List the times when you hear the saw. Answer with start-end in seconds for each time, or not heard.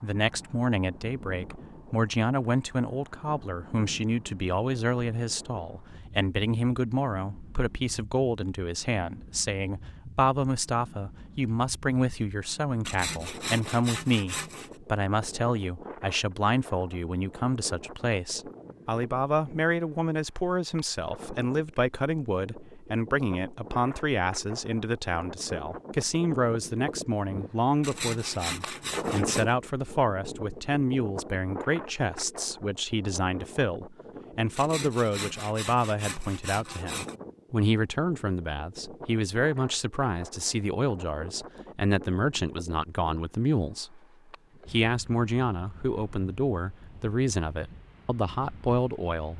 12.8-14.7, 27.8-29.5, 34.5-37.1.